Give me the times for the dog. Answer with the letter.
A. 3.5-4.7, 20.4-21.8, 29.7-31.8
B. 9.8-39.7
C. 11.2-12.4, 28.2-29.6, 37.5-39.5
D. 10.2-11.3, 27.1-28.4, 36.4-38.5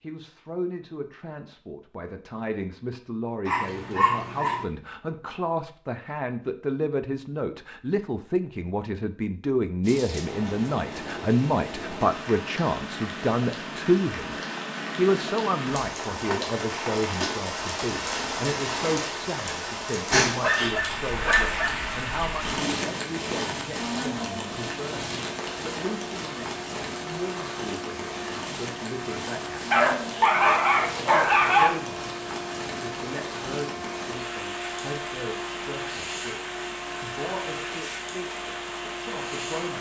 A.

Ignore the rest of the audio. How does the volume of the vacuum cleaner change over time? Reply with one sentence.
The loudness of the vacuum cleaner stays about the same.